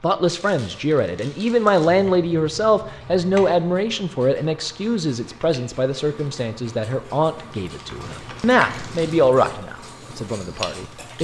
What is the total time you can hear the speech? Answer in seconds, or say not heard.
11 s.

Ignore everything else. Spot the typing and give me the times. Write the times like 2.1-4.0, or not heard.
not heard.